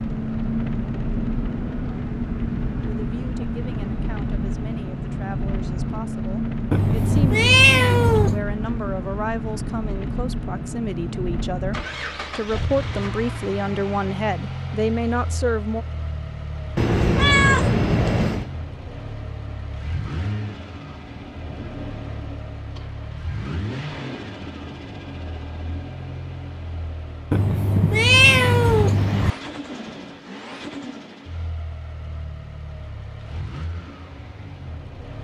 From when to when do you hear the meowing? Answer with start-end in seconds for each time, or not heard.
6.7-8.4, 16.8-18.5, 27.3-29.3.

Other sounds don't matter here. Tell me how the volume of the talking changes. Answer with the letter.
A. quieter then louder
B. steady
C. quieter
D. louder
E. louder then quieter
D.